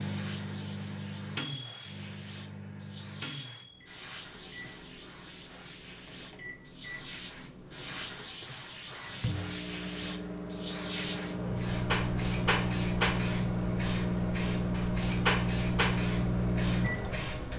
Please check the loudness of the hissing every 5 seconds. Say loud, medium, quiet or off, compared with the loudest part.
medium, medium, loud, loud.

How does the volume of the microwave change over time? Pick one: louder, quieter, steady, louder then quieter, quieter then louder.
quieter then louder.